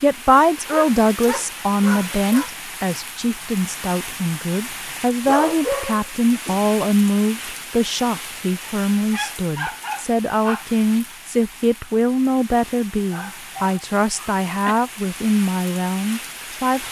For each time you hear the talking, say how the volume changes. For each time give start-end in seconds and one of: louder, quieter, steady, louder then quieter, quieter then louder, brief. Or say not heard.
0.0-16.8 steady.